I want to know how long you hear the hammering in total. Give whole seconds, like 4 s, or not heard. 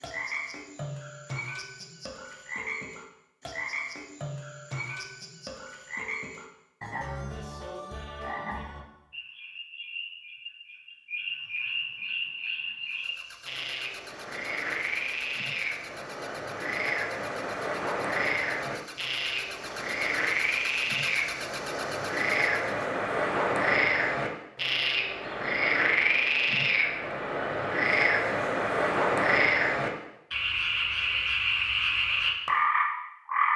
not heard.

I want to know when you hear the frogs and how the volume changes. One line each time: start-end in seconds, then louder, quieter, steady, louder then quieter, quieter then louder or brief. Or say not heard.
0.0-33.5 louder.